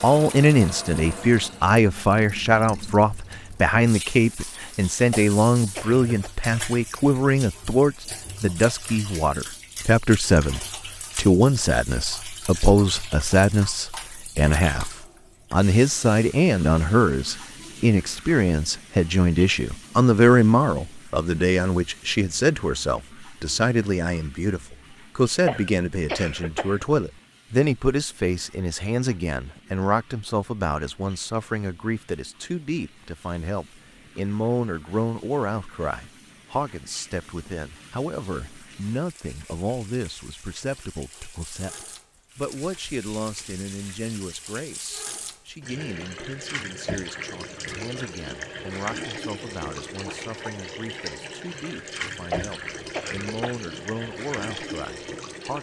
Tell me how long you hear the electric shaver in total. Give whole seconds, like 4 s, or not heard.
not heard.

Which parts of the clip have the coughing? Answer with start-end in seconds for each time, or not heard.
5.1-6.3, 25.4-26.9, 52.3-53.6.